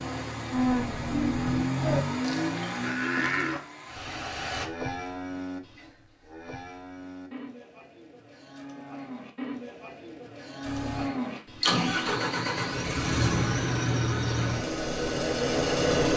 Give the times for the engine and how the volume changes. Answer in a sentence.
You can hear the engine from 0.0 to 4.7 s, getting louder then quieter; and from 10.7 to 16.1 s, at a steady volume.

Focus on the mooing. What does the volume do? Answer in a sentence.
The volume of the mooing goes down, then up.